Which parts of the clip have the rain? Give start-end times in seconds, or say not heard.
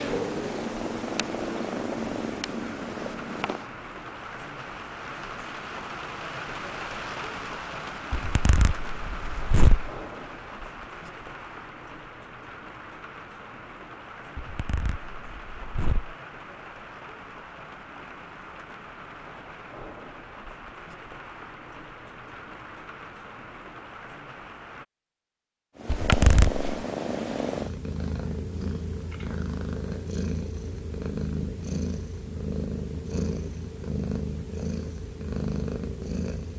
0.2-24.9.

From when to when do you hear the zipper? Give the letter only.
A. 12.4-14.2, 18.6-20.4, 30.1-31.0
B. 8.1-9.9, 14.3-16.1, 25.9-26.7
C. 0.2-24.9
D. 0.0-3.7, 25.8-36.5
B.